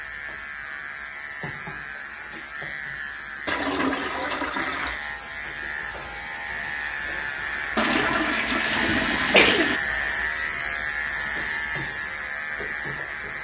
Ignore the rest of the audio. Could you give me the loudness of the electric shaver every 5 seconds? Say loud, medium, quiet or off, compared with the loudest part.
medium, loud, loud.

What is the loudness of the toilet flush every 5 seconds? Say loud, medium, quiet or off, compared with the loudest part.
loud, loud, off.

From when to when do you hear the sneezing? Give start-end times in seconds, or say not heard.
8.7-9.8.